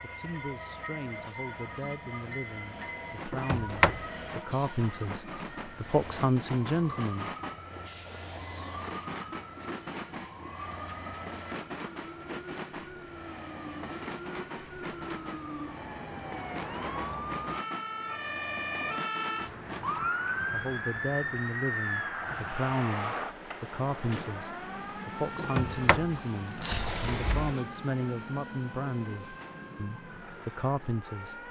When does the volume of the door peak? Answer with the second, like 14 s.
4 s.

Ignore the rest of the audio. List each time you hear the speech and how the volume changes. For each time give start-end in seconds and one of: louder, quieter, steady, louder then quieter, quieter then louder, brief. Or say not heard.
0.0-7.3 louder
20.5-31.4 steady.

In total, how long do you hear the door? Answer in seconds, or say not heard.
3 s.